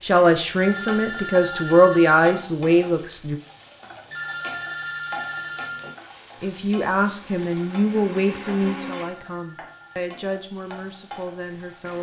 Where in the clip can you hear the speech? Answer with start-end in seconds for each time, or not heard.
0.0-3.4, 6.4-11.9.